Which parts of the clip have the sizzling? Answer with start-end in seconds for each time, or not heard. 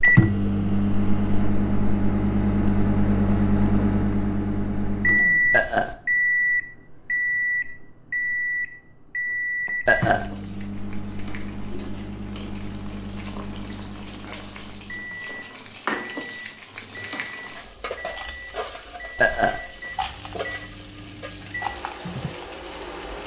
9.9-23.2.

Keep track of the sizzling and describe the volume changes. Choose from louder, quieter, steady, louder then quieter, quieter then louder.
louder.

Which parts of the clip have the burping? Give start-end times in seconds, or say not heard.
5.5-6.0, 9.8-10.3, 19.1-19.6.